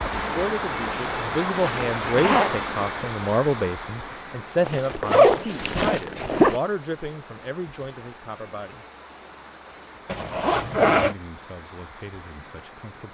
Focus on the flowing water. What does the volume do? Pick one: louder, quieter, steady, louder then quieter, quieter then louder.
quieter.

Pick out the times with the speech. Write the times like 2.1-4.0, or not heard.
0.1-8.8, 10.9-13.0.